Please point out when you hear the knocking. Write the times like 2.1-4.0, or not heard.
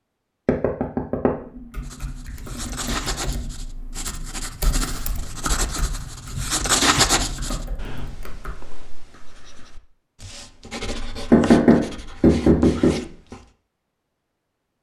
0.5-1.3, 11.3-12.9.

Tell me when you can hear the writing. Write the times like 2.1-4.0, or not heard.
1.8-13.4.